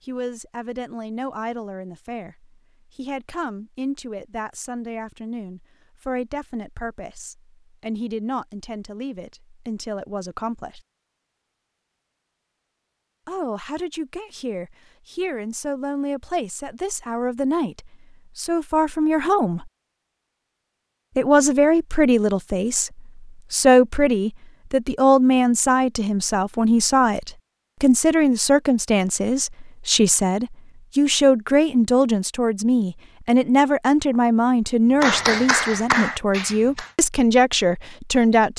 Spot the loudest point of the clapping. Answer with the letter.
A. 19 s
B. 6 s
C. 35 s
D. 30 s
C.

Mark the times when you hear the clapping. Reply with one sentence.
The clapping can be heard from 35.0 to 37.0 s.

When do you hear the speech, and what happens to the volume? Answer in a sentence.
The speech can be heard from 0.1 to 10.8 s, at a steady volume; from 13.2 to 19.7 s, getting louder; and from 21.1 to 38.5 s, at a steady volume.